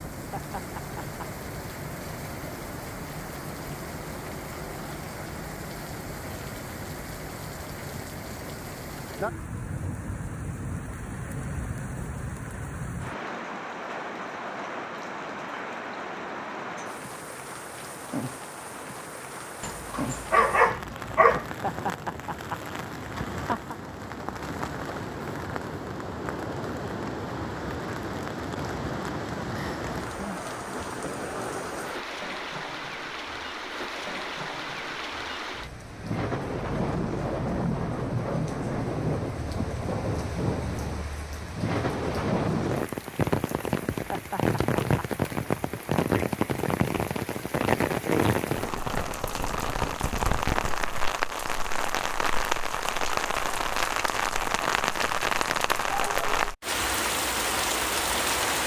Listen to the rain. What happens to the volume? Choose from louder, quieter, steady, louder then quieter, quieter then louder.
louder.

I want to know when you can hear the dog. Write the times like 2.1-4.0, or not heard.
19.6-21.4.